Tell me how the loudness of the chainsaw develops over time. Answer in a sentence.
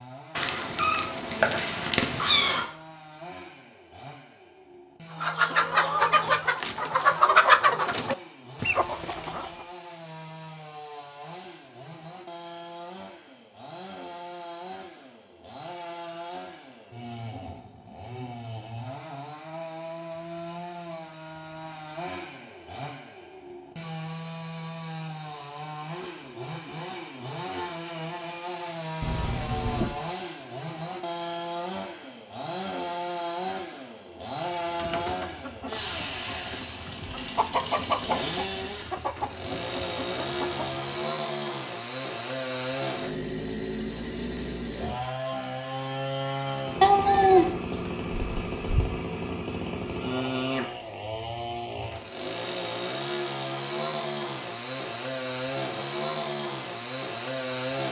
The loudness of the chainsaw goes up.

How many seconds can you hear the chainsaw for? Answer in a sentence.
The chainsaw can be heard for 58 seconds in total.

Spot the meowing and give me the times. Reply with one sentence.
You can hear the meowing from 0.3 to 2.6 s, from 29.0 to 30.0 s and from 46.8 to 48.8 s.